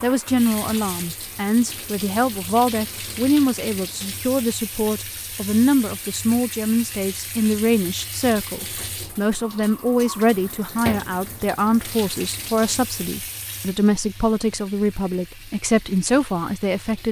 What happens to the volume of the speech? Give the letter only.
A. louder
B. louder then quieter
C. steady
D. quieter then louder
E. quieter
C.